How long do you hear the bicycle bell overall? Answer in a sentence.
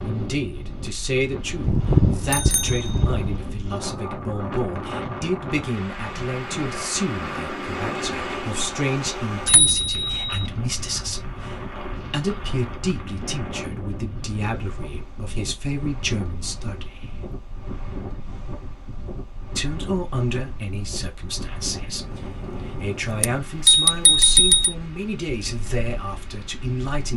You can hear the bicycle bell for 4 seconds altogether.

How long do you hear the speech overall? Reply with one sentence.
The speech can be heard for 25 seconds in total.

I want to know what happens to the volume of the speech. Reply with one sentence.
The loudness of the speech stays about the same.